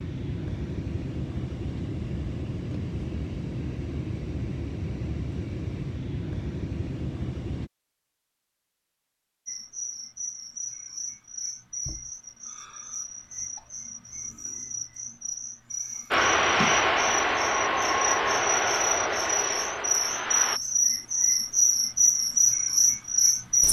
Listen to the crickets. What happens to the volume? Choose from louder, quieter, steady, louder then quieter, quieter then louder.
louder.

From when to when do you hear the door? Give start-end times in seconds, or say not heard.
not heard.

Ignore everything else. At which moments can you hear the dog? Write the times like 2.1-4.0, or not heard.
not heard.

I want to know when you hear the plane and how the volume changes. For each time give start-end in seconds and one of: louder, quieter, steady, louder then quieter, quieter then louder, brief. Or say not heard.
0.0-7.7 steady
16.1-20.6 quieter.